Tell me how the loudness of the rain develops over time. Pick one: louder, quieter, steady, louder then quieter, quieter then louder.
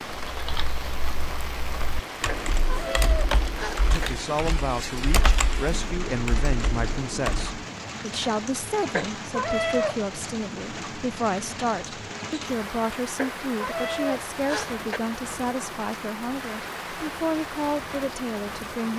steady.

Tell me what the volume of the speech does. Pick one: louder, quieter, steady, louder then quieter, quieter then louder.
steady.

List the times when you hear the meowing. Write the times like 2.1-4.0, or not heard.
2.2-4.1, 8.9-10.0, 13.2-15.0.